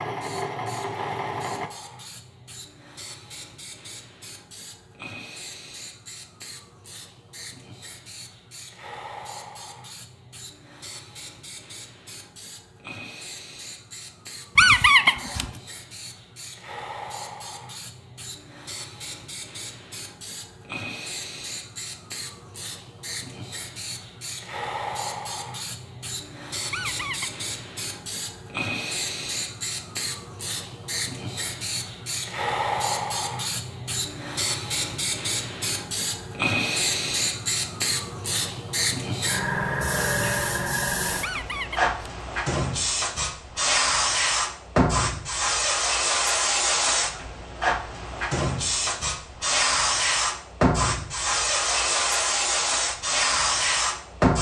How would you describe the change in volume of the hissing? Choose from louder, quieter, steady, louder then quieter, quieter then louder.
louder.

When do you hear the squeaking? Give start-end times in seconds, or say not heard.
14.6-15.5, 26.7-27.4, 41.2-42.0.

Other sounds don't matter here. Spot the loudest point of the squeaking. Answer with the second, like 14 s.
15 s.